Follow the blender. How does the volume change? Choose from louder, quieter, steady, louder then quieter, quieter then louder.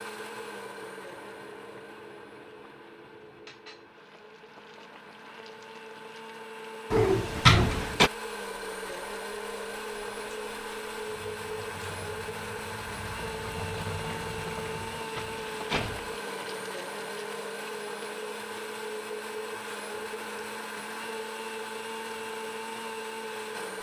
louder.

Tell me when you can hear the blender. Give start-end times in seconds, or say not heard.
0.0-23.7.